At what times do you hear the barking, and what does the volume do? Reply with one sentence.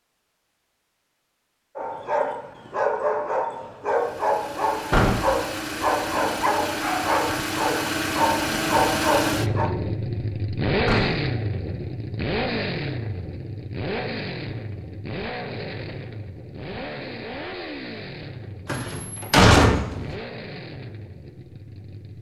You can hear the barking from 1.8 to 9.7 s, at a steady volume.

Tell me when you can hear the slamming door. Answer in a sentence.
You can hear the slamming door from 4.9 to 5.3 s, from 10.8 to 11.3 s and from 18.6 to 20.1 s.